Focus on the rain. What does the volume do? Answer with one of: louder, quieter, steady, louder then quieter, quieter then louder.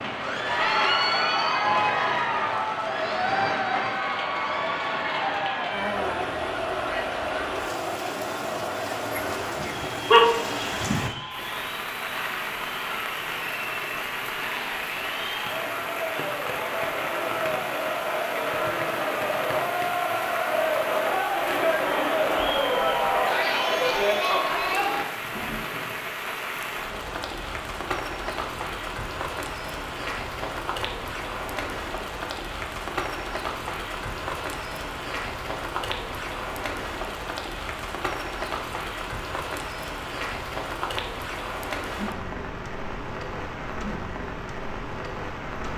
steady.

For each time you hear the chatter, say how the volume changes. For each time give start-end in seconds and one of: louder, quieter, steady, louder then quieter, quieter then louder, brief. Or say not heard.
0.1-25.1 quieter then louder.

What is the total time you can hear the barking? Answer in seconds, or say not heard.
2 s.